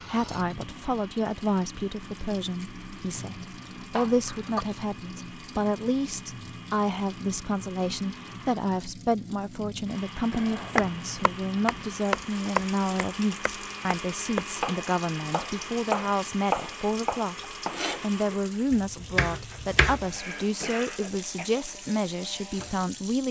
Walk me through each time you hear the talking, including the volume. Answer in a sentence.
The talking can be heard from 0.1 to 17.4 s, at a steady volume; and from 18.0 to 23.2 s, at a steady volume.